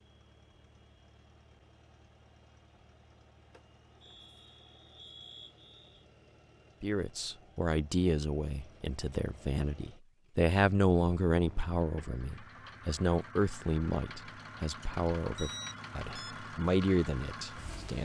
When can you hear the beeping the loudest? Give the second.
16 s.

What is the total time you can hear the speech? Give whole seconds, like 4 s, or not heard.
11 s.